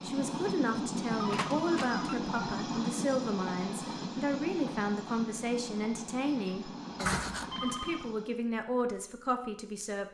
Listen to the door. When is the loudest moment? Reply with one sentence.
The volume of the door peaks at 7 seconds.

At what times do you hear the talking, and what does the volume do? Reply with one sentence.
You can hear the talking from 0.0 to 10.1 s, at a steady volume.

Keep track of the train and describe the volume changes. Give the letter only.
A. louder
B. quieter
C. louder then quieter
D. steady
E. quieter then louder
B.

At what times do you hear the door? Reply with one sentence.
You can hear the door from 1.3 to 2.0 s and from 7.0 to 7.5 s.